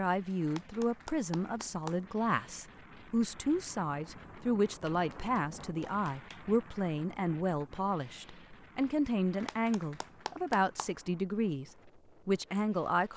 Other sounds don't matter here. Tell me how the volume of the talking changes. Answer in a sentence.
The volume of the talking stays about the same.